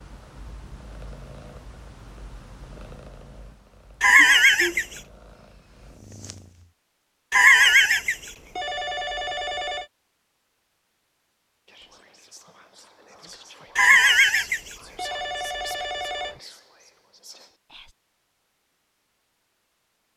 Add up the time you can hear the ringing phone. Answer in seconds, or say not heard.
6 s.